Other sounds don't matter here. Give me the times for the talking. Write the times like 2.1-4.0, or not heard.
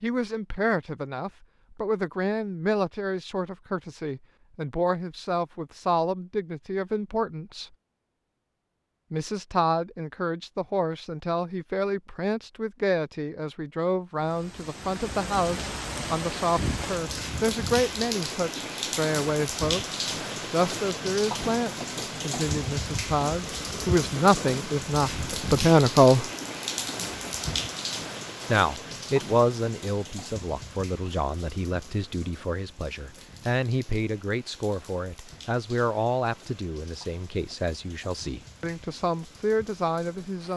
0.0-7.7, 9.1-26.2, 28.5-40.5.